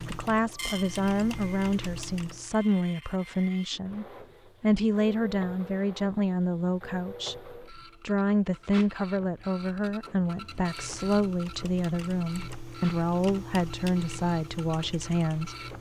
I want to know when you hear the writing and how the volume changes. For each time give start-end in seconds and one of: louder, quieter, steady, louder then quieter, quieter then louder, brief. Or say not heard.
not heard.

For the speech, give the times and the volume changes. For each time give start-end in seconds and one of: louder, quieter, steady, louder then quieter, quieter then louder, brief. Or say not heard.
0.1-15.6 steady.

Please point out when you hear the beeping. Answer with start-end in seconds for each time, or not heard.
not heard.